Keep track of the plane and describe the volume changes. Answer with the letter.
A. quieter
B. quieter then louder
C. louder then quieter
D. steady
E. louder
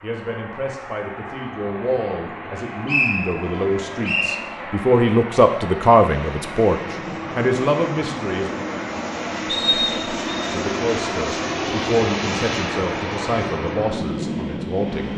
E.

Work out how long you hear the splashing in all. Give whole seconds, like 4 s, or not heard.
not heard.